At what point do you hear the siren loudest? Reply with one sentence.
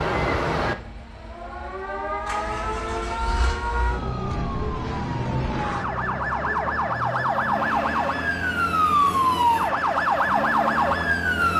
The volume of the siren peaks at 9 seconds.